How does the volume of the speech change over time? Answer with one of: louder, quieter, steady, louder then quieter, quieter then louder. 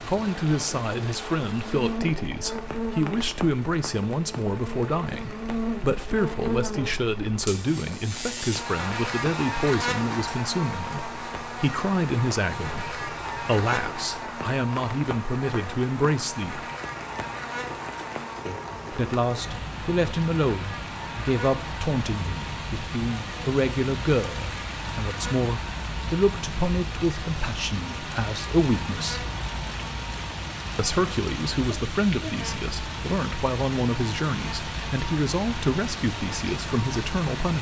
steady.